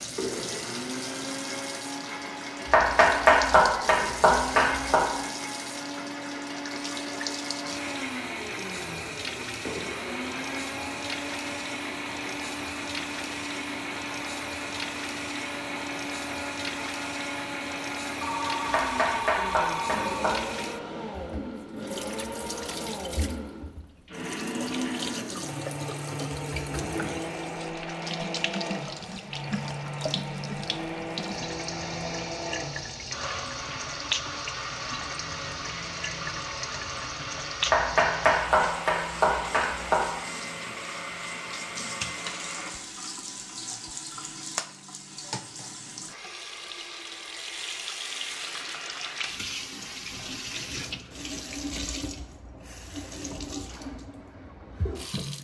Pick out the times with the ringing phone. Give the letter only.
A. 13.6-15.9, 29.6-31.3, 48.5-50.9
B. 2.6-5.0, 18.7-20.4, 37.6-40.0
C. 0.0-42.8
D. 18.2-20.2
D.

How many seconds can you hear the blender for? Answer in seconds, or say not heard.
43 s.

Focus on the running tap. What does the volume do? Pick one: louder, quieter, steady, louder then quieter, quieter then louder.
steady.